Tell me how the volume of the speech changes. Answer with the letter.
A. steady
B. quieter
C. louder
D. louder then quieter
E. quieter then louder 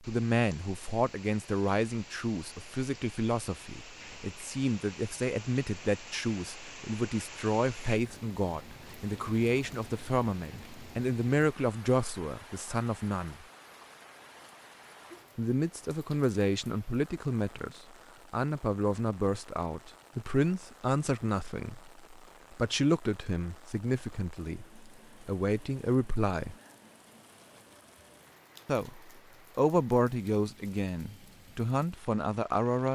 A.